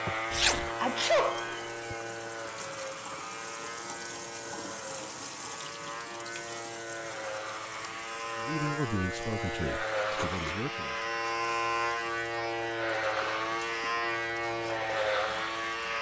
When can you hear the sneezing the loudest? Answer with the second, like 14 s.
1 s.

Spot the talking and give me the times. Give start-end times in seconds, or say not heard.
8.4-11.1.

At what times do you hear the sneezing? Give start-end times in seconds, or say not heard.
0.1-1.9, 10.2-10.6.